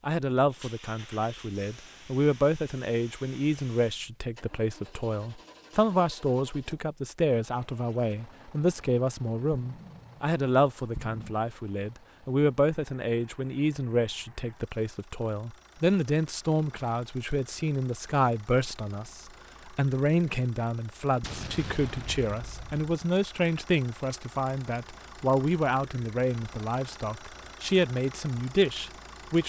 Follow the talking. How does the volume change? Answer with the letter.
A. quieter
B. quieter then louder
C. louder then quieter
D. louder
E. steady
E.